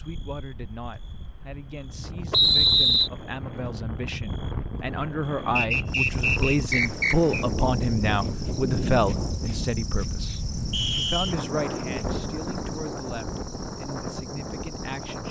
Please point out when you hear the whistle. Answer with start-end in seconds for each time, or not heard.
2.3-3.1, 5.5-7.5, 10.7-11.3.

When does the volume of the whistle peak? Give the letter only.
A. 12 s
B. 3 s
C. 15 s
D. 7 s
B.